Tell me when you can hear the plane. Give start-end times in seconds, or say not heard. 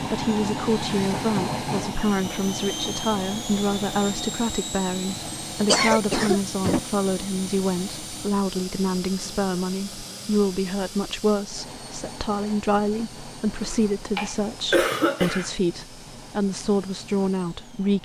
0.0-18.0.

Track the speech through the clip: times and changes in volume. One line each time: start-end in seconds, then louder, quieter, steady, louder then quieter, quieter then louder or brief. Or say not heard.
0.0-18.0 steady.